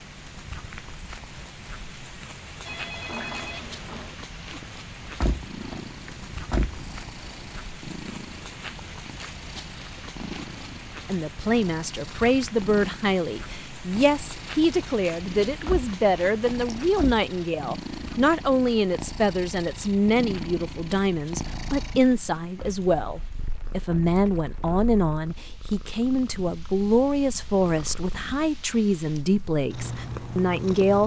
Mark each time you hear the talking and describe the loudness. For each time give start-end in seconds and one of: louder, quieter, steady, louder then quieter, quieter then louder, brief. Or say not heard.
11.1-31.0 steady.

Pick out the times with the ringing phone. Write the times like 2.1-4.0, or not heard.
2.6-4.2.